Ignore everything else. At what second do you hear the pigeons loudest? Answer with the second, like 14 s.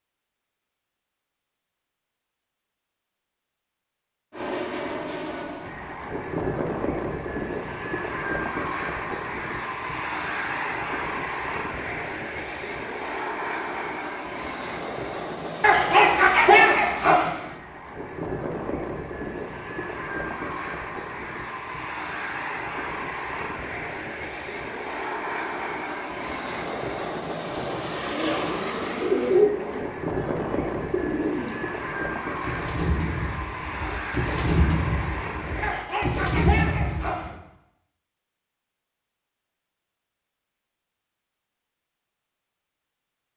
29 s.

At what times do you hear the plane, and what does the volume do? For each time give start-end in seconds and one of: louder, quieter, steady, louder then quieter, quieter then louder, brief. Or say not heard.
4.3-35.9 steady.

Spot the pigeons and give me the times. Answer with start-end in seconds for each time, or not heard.
28.1-37.4.